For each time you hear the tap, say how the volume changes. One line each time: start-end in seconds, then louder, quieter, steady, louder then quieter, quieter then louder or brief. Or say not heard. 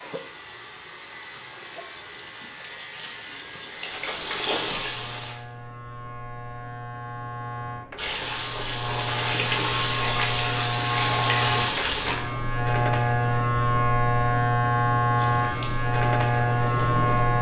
0.0-5.3 louder
8.0-12.2 louder
15.2-17.3 brief.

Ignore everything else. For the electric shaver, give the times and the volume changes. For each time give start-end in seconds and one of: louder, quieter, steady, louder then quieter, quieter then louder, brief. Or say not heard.
0.0-17.3 louder.